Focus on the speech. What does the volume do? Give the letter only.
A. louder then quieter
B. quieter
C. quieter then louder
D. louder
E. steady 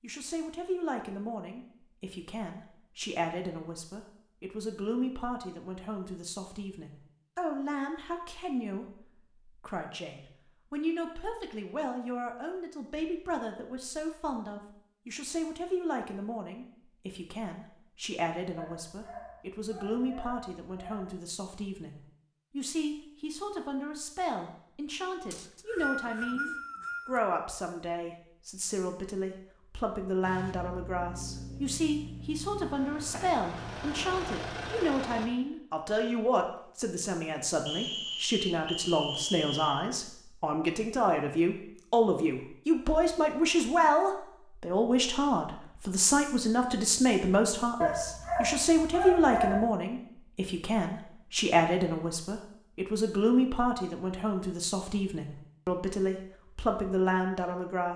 D.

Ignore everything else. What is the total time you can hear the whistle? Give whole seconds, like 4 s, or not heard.
4 s.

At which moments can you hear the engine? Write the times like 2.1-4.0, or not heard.
30.2-35.3.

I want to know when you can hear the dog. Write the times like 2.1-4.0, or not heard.
18.6-21.2, 47.8-49.7.